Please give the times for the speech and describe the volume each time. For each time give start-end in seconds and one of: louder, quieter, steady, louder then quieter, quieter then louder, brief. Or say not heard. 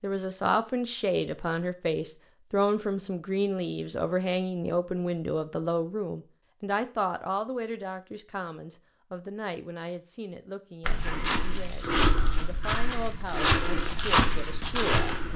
0.0-15.3 quieter.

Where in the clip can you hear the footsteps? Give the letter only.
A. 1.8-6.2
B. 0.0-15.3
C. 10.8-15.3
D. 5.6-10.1
C.